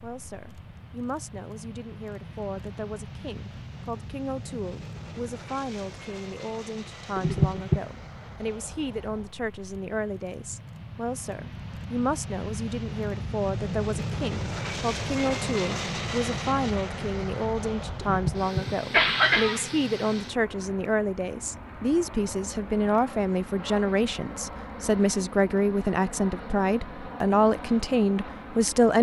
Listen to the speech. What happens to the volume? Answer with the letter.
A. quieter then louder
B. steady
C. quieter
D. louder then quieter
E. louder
E.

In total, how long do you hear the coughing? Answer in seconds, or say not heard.
2 s.